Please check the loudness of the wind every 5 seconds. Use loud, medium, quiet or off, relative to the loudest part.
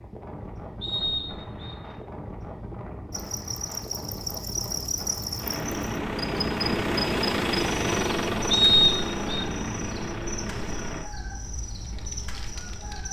loud, loud, medium.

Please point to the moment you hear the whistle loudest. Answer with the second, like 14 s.
9 s.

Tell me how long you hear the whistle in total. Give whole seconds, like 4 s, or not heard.
2 s.